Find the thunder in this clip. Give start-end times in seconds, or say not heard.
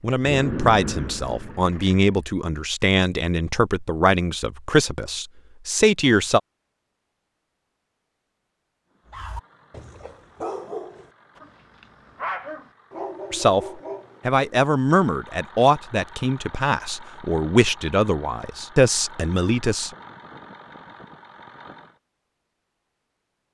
0.2-1.8.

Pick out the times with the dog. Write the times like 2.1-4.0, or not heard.
9.1-14.4.